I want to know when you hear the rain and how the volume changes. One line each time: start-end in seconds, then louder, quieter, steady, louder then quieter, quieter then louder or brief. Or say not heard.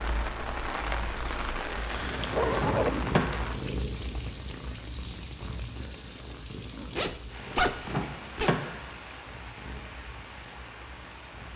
0.0-11.5 quieter.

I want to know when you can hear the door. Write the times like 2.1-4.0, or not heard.
2.5-3.4, 7.8-8.8.